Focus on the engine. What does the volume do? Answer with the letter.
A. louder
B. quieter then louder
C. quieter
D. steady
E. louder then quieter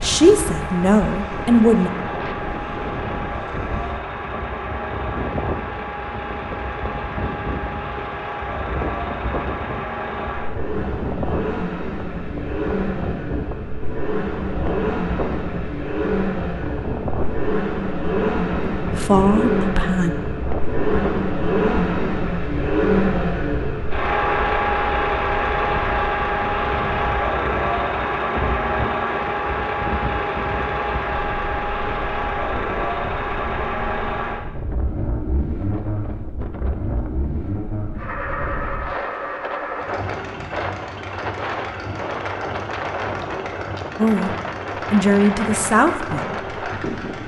E.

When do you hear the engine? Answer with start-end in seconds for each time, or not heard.
0.0-47.2.